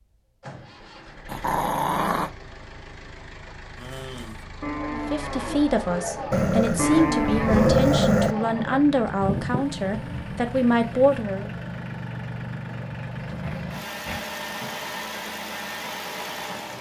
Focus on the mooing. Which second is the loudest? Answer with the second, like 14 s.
7 s.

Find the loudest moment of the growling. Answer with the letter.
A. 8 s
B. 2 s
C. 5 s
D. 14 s
A.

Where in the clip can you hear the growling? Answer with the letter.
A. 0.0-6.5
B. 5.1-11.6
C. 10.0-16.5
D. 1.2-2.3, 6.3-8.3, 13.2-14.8
D.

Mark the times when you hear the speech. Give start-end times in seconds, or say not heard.
5.1-11.6.